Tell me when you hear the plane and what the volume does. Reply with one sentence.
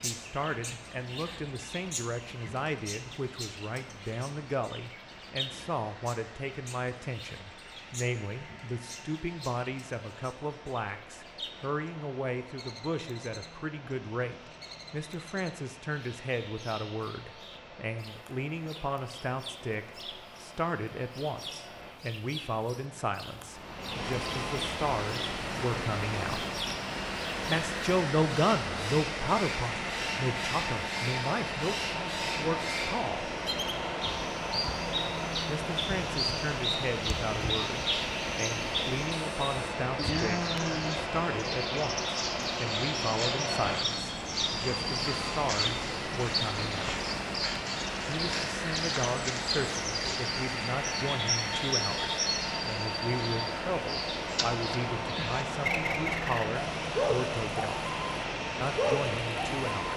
The plane can be heard from 0.0 to 59.9 s, getting louder.